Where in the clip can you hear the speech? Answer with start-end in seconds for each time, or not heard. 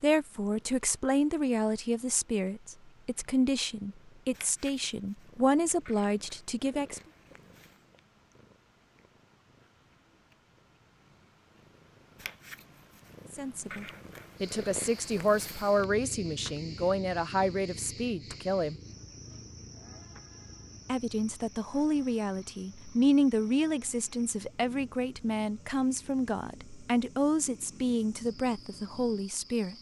0.0-7.0, 13.3-18.8, 20.9-29.7.